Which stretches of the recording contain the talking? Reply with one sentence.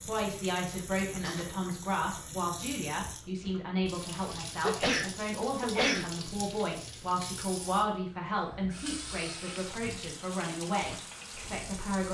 The talking can be heard from 0.0 to 12.0 s.